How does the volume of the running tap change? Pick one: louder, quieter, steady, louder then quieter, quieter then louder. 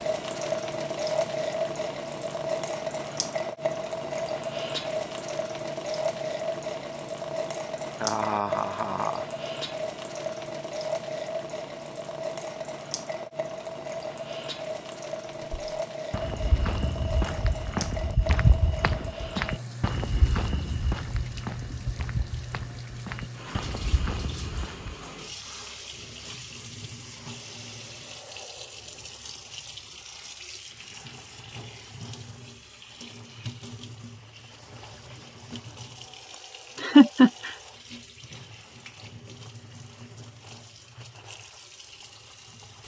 quieter.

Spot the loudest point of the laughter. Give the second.
37 s.